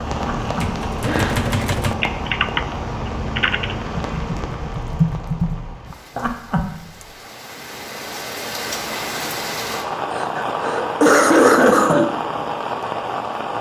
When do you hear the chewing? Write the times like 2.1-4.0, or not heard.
not heard.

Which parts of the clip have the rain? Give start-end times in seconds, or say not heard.
0.0-13.5.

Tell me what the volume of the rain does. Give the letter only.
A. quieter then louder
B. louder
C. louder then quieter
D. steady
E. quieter
A.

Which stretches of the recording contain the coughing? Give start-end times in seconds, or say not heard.
0.2-1.4, 6.2-6.7, 10.1-12.1.